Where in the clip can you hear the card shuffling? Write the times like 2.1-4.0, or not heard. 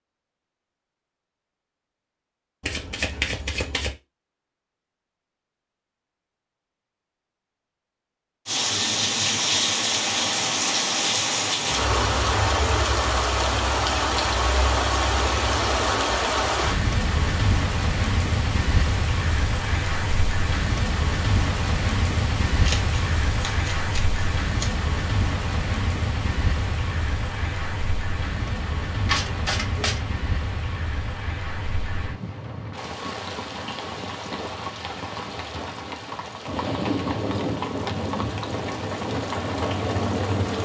2.6-4.0, 22.6-24.7, 29.1-30.1.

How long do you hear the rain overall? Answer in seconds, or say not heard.
32 s.